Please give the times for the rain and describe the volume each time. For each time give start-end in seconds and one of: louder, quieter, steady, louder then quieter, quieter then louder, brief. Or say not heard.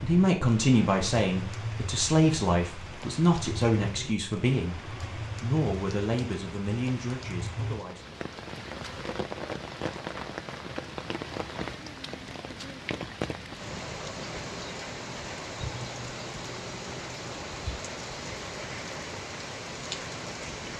0.0-20.7 steady.